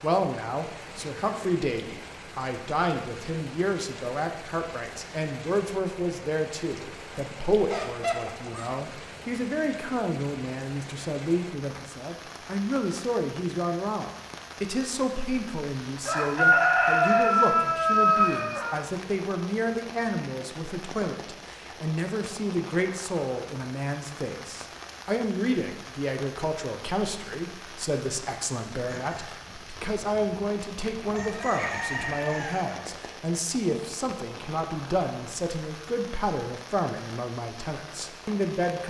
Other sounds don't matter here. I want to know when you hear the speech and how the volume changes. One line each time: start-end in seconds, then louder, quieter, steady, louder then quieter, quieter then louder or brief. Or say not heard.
0.0-38.8 steady.